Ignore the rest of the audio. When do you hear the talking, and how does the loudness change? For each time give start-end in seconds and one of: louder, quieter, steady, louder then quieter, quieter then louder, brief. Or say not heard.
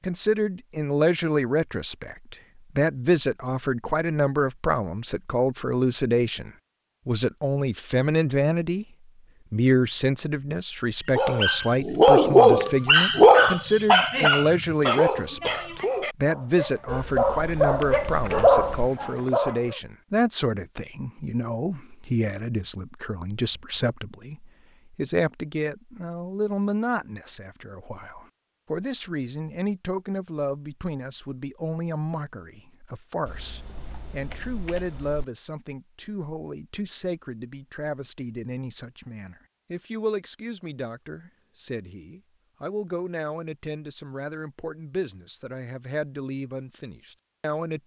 0.0-8.8 steady
9.5-47.8 quieter.